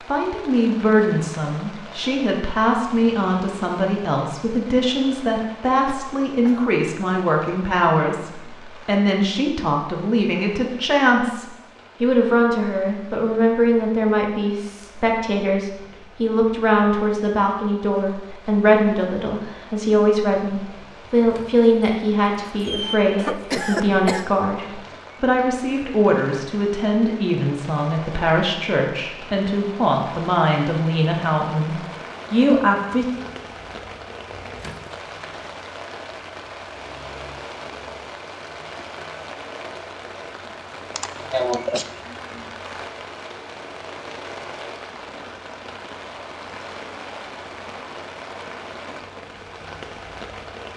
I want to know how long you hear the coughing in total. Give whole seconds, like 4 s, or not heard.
3 s.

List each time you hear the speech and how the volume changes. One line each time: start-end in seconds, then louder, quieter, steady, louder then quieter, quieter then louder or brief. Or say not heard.
0.1-33.2 steady.